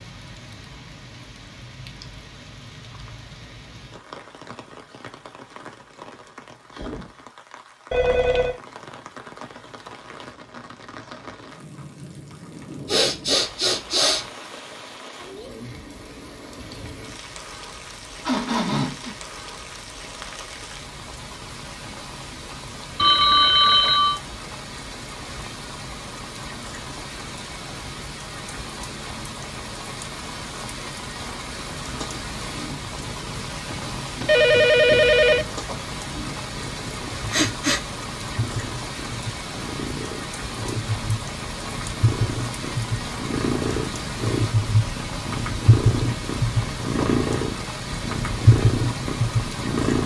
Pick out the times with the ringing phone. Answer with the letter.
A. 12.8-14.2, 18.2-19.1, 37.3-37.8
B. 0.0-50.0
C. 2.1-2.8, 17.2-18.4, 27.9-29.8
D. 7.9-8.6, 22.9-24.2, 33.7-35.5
D.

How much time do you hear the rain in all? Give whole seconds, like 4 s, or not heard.
50 s.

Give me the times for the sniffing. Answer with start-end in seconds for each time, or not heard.
12.8-14.2, 18.2-19.1, 37.3-37.8.